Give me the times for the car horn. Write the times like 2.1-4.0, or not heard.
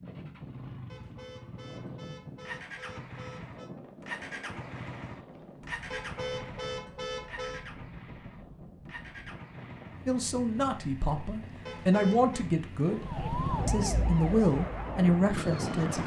0.8-3.7, 5.9-7.7, 11.7-12.4.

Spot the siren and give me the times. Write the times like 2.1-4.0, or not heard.
12.9-16.0.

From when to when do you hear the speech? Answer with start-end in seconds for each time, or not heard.
10.1-13.1, 13.7-16.0.